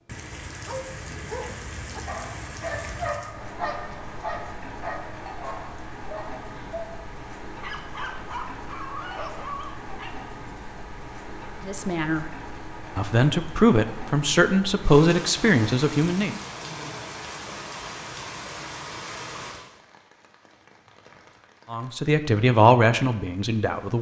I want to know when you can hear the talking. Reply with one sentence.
The talking can be heard from 11.7 to 12.2 s, from 12.9 to 16.4 s and from 21.7 to 23.9 s.